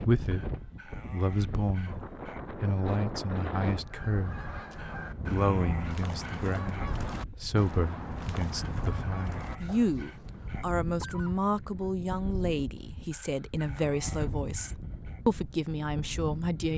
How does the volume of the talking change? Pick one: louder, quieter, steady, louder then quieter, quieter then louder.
steady.